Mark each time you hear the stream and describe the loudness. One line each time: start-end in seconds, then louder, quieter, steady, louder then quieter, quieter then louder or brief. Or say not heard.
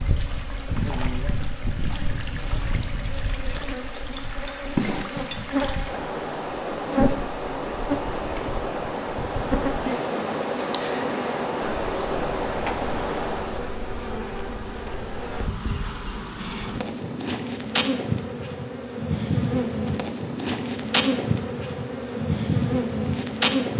0.0-13.8 louder.